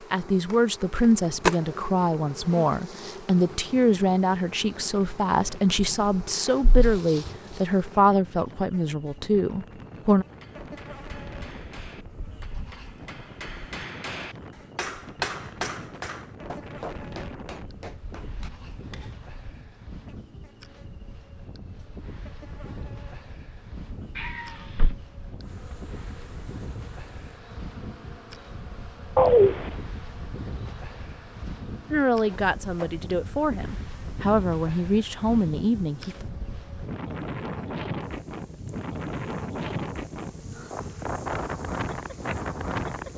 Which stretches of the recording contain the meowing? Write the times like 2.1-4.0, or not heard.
5.8-7.0, 24.1-24.9, 29.1-29.7.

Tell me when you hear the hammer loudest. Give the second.
15 s.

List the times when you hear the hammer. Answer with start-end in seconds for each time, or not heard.
10.2-19.2.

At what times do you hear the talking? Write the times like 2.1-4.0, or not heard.
0.1-10.2, 31.9-36.2.